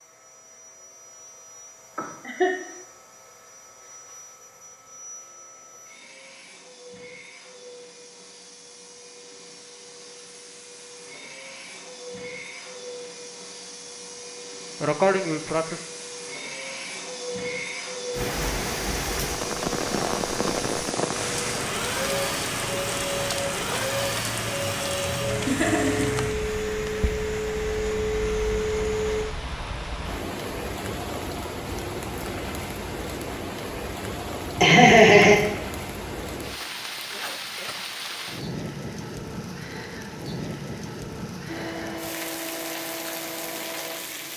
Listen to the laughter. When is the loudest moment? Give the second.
35 s.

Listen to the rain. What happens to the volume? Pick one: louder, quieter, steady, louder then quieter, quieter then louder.
quieter.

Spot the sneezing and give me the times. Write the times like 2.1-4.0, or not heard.
14.8-15.8.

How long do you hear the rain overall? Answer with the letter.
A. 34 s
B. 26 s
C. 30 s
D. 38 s
B.